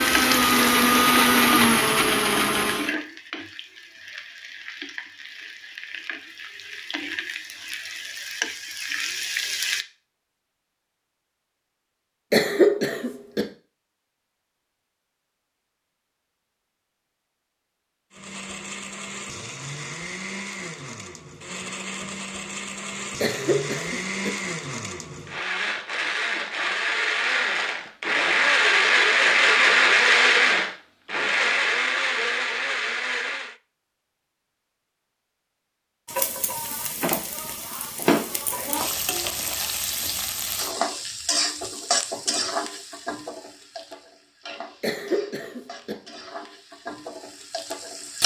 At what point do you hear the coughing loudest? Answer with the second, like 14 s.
13 s.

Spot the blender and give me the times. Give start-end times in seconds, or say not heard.
0.0-3.0, 18.1-33.5.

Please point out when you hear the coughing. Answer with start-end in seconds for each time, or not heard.
12.3-13.4, 23.2-24.3, 44.8-46.0.